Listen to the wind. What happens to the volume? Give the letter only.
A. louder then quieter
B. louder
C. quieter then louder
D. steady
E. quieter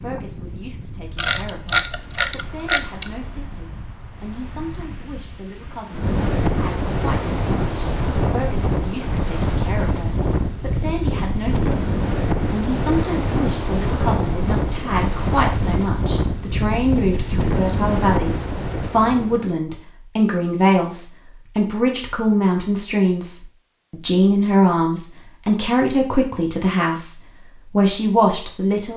B.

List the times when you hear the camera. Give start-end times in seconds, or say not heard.
1.1-3.4.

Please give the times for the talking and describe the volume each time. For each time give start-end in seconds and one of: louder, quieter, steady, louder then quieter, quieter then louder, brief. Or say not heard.
0.0-28.9 louder.